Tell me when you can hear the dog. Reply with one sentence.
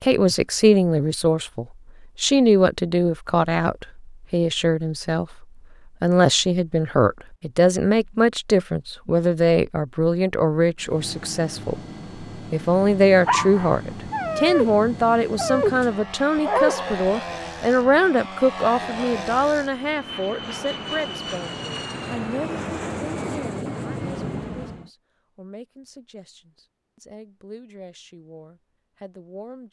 The dog can be heard from 13.2 to 17.0 s.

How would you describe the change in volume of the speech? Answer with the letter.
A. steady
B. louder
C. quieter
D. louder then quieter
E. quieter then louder
C.